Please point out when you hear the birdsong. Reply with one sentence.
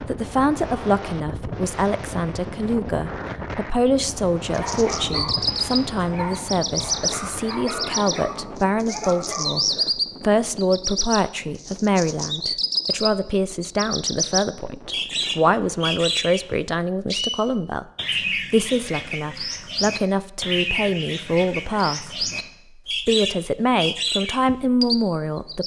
You can hear the birdsong from 4.5 to 25.6 s.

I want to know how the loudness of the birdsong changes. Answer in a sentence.
The volume of the birdsong stays about the same.